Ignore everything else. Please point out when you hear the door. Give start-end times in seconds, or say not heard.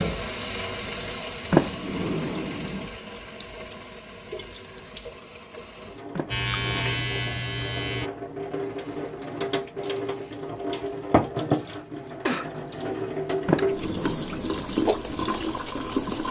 1.5-2.9, 6.2-7.3, 13.4-14.8.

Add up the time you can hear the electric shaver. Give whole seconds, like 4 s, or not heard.
2 s.